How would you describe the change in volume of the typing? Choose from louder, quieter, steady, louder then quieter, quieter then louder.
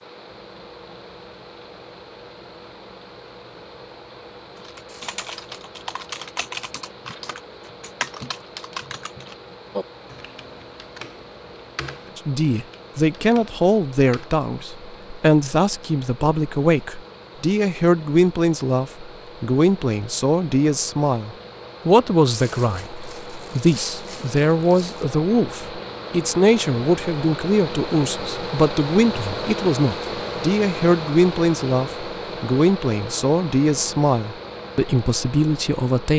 quieter.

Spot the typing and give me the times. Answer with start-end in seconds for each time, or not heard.
4.5-14.3.